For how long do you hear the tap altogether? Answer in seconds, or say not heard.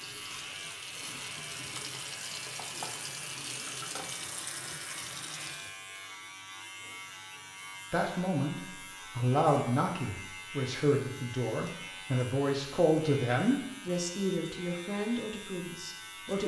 6 s.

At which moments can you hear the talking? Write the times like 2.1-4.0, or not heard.
7.9-16.4.